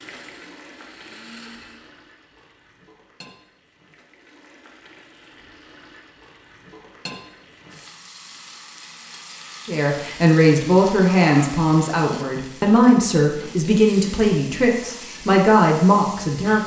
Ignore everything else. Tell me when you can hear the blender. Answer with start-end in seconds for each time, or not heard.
0.0-1.9.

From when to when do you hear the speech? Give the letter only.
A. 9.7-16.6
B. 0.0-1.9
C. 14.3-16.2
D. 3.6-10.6
A.